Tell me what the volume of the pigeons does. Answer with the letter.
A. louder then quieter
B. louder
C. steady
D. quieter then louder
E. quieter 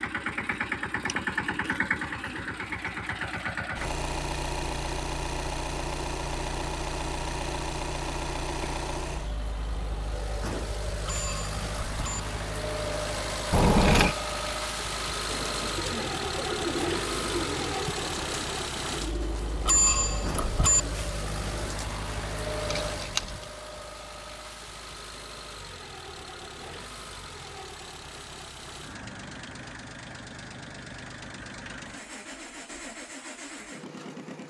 E.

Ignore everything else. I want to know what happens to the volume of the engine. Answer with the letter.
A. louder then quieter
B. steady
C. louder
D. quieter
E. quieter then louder
D.